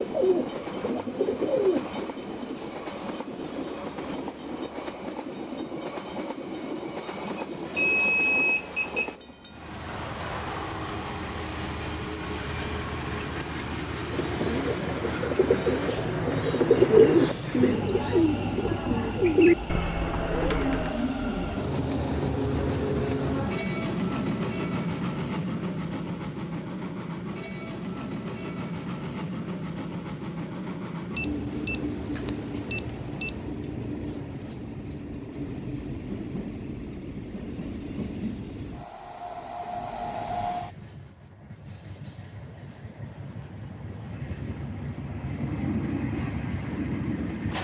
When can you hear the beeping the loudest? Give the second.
8 s.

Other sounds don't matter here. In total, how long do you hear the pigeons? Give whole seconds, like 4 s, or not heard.
9 s.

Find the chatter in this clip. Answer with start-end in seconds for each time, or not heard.
not heard.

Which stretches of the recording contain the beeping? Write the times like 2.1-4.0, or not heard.
7.8-9.2, 31.1-33.4.